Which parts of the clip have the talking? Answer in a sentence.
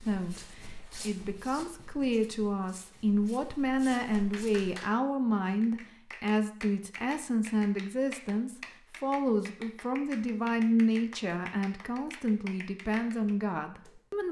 You can hear the talking from 0.0 to 14.2 s.